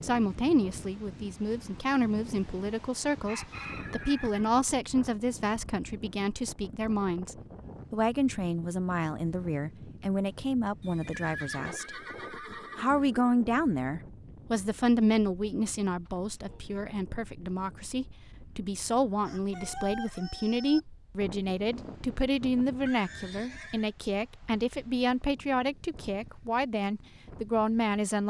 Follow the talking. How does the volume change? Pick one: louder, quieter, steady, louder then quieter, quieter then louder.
steady.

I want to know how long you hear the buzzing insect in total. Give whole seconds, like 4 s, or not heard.
not heard.